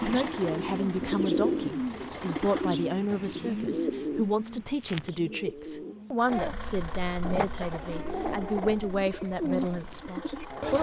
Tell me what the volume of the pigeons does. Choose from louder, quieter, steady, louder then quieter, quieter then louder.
quieter then louder.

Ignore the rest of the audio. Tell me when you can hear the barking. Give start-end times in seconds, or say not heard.
6.2-10.7.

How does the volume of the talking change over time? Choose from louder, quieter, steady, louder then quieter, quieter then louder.
steady.